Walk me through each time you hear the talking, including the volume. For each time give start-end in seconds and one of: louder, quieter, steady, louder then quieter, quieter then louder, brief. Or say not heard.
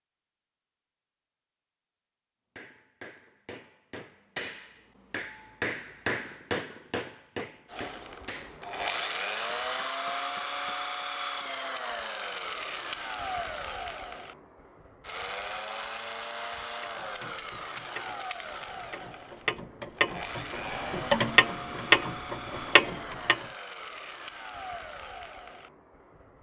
not heard.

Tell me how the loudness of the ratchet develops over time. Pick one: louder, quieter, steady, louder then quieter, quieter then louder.
louder.